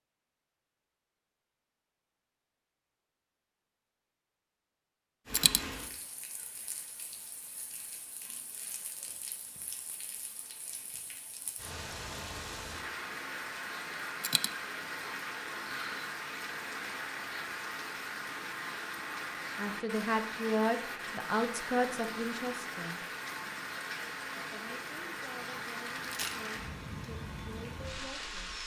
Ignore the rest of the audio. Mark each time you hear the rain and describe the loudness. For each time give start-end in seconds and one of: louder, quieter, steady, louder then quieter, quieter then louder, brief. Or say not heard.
5.2-28.6 louder.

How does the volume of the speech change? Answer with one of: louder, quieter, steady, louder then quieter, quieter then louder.
quieter.